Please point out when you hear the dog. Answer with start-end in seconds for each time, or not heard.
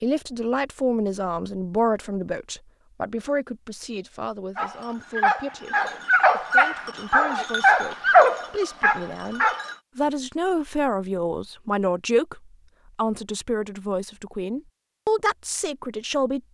4.5-9.8.